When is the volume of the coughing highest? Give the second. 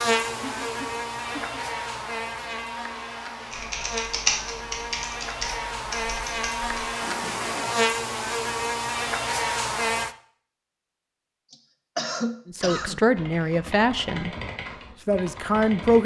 12 s.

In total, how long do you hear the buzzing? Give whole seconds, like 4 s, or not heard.
10 s.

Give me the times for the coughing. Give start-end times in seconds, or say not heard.
0.4-1.6, 7.0-7.7, 11.5-13.5.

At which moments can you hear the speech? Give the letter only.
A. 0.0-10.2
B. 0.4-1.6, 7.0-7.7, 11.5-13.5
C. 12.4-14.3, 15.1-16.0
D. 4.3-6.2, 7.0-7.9
C.